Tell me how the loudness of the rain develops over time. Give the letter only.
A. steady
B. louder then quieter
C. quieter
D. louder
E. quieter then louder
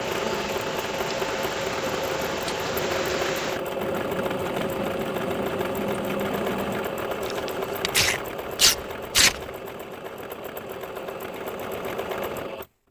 A.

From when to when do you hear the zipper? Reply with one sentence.
The zipper can't be heard in this clip.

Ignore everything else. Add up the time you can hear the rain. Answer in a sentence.
You can hear the rain for 7 seconds altogether.